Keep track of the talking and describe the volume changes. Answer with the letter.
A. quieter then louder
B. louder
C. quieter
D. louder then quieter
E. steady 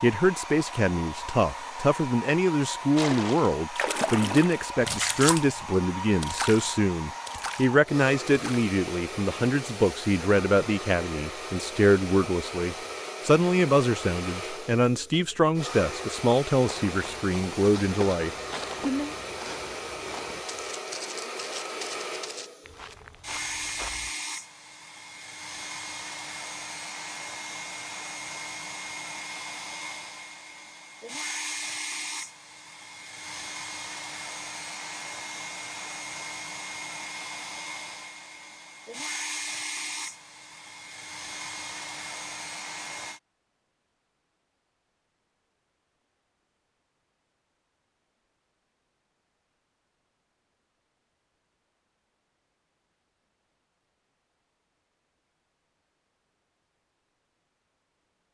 E.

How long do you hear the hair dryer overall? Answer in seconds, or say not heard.
43 s.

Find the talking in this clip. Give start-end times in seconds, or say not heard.
0.0-19.1.